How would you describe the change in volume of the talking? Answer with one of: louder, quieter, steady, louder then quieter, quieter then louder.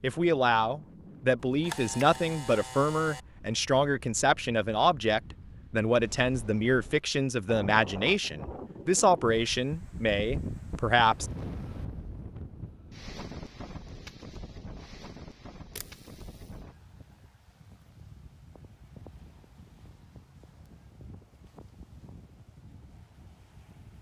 steady.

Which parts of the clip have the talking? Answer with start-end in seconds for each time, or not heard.
0.0-11.3.